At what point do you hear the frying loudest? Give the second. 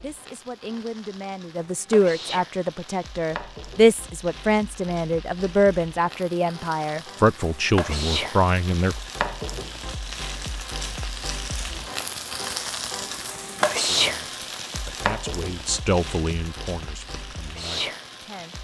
14 s.